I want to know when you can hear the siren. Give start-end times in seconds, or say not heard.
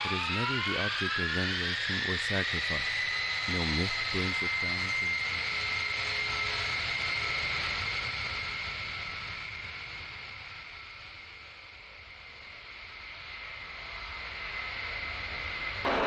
not heard.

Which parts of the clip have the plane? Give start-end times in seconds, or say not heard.
0.0-16.0.